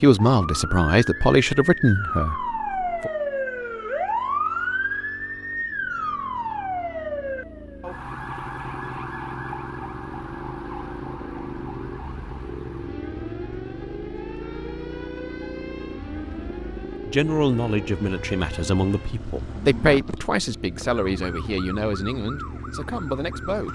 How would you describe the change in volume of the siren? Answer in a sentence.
The volume of the siren goes down.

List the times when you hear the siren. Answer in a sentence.
The siren can be heard from 0.2 to 23.6 s.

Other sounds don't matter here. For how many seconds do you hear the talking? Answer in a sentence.
You can hear the talking for 10 seconds altogether.